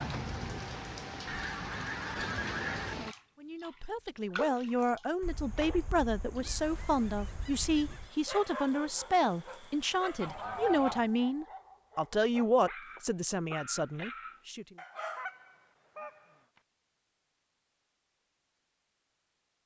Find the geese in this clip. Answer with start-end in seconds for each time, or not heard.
1.2-3.0, 5.2-8.1, 10.2-11.1, 15.1-16.2.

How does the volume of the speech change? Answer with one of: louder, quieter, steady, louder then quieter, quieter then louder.
steady.